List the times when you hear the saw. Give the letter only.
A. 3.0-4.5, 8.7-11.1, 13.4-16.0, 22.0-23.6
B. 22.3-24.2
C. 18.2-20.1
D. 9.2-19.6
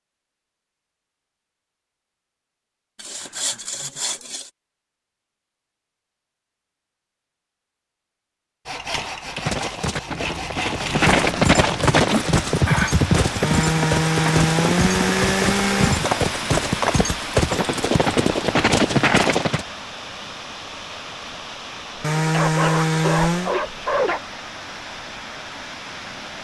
A.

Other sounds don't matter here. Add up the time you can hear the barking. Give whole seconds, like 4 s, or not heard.
2 s.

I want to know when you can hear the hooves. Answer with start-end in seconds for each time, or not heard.
9.2-19.6.